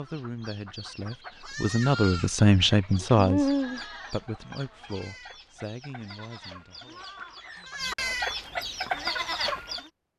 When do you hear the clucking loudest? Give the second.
3 s.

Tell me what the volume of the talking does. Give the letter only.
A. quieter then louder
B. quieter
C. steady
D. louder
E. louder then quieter
E.